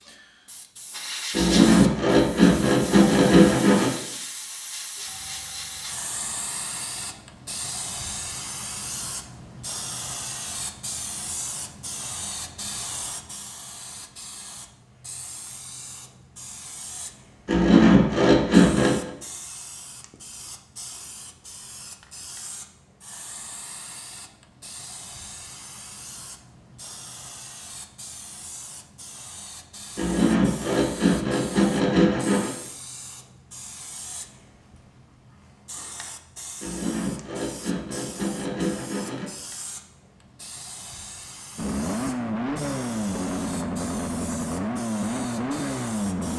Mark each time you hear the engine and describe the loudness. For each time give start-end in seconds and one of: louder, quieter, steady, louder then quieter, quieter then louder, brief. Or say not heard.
41.5-46.3 steady.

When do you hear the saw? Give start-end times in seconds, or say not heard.
1.3-4.0, 17.4-19.1, 29.9-32.5, 36.6-39.3.